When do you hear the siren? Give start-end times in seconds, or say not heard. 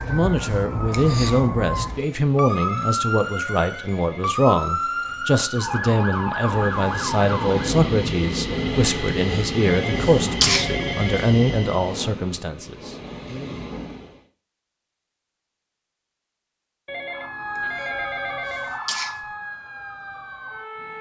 0.0-7.8, 17.1-20.9.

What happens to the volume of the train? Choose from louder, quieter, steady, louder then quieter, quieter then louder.
quieter.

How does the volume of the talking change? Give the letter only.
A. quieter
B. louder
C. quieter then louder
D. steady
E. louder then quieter
D.